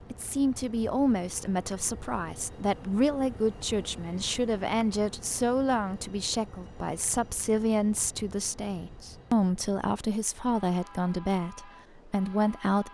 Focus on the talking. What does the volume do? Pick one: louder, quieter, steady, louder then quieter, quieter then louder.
steady.